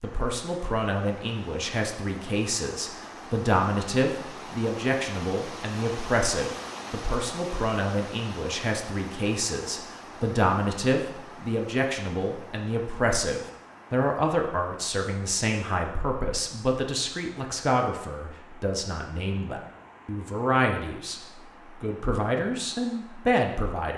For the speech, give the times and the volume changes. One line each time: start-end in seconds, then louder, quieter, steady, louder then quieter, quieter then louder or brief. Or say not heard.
0.0-21.2 steady
21.8-23.9 brief.